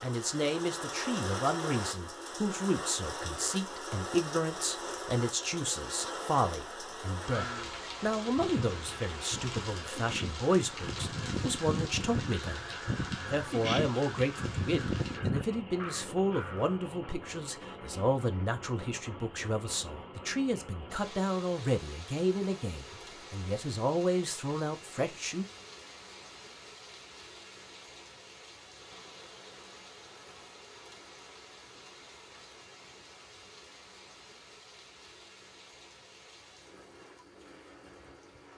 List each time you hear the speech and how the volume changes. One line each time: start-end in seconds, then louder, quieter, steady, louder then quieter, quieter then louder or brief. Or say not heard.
0.0-25.4 steady.